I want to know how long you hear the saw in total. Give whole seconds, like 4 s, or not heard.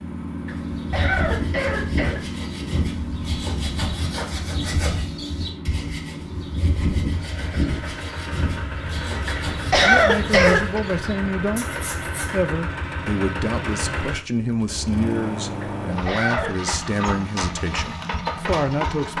12 s.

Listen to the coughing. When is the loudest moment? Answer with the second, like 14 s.
10 s.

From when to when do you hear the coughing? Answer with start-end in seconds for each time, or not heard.
0.5-2.2, 9.5-10.8, 15.8-16.8.